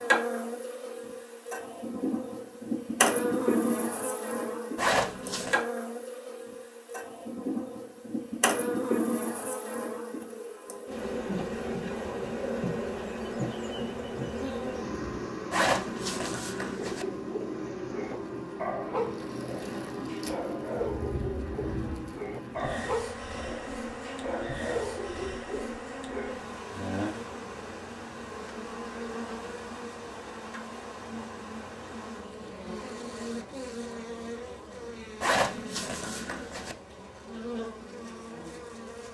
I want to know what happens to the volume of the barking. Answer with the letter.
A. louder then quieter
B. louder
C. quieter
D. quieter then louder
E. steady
E.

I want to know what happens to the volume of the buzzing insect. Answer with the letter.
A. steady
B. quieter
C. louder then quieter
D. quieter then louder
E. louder
B.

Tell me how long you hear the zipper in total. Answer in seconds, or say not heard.
4 s.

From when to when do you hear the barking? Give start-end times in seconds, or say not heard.
16.8-26.4.